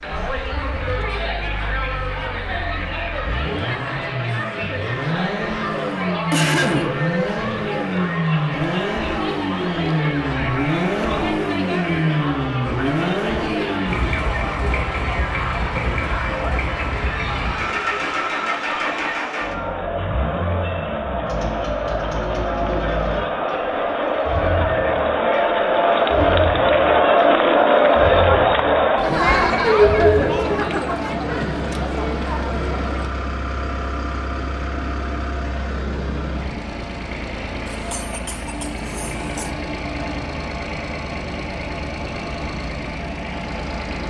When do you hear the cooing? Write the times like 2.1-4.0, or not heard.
not heard.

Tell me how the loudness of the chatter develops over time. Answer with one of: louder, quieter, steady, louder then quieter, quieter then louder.
louder.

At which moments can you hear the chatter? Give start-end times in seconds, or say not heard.
0.0-33.1.